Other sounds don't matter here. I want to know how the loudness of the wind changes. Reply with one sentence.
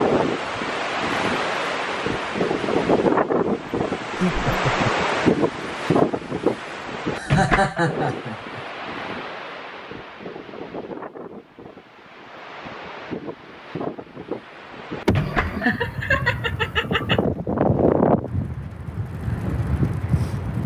The volume of the wind goes down, then up.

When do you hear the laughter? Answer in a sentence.
The laughter can be heard from 4.2 to 4.9 s, from 7.2 to 8.6 s and from 15.1 to 17.2 s.